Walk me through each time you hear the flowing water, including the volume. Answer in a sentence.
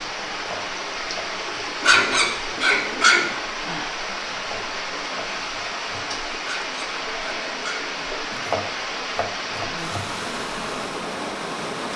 The flowing water can be heard from 0.0 to 11.9 s, at a steady volume.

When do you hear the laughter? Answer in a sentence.
You can't hear the laughter here.